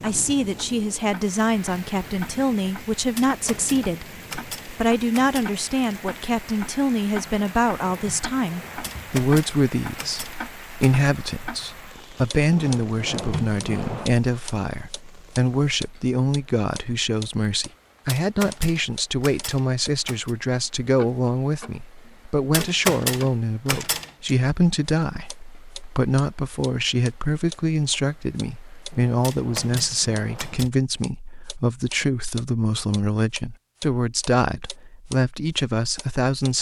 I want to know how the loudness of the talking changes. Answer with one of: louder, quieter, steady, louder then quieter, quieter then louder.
steady.